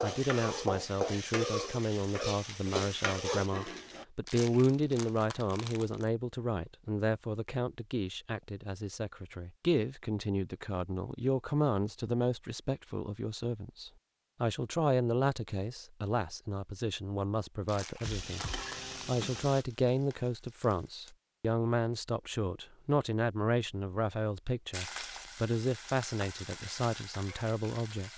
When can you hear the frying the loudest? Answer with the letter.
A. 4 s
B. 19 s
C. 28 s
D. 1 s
D.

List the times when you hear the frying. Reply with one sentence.
The frying can be heard from 0.0 to 4.0 s, from 18.0 to 21.1 s and from 24.7 to 28.1 s.